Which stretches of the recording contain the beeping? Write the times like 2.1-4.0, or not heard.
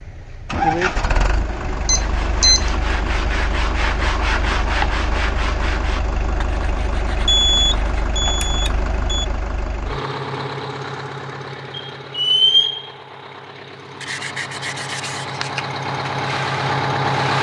1.9-2.7, 7.2-9.2, 11.7-12.9.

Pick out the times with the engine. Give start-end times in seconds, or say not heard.
0.0-17.3.